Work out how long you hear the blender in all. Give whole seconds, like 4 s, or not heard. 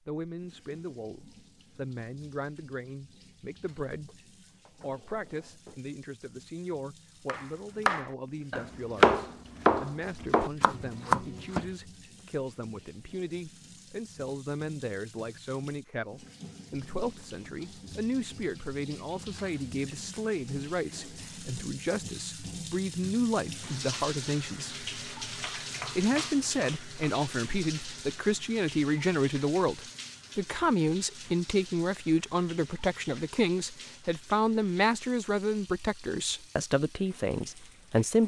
not heard.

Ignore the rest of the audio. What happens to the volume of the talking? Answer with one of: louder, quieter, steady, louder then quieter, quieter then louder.
louder.